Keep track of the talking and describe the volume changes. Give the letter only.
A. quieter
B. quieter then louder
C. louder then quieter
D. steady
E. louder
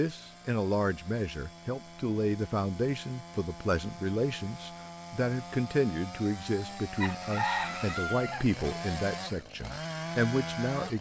D.